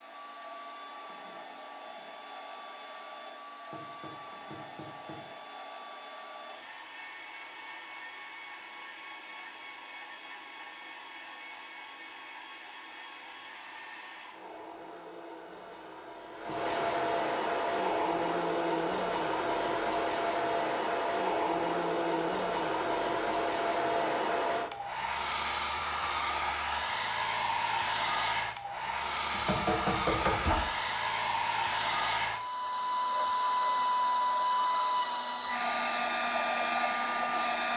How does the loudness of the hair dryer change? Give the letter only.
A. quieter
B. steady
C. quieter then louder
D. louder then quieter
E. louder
E.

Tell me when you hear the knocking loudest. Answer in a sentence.
The volume of the knocking peaks at 30 seconds.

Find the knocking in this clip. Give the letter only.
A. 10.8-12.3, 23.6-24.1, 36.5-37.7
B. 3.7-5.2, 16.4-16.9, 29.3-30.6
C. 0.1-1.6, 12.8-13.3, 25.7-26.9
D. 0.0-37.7
B.